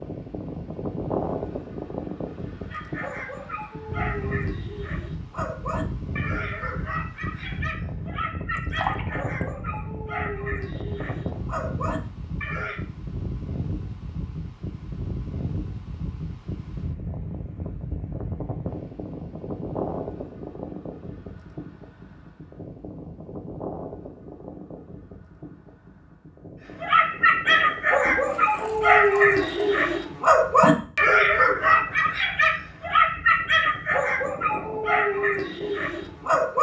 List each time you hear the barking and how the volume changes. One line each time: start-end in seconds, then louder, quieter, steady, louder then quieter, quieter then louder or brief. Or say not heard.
2.7-12.8 steady
26.8-36.5 quieter.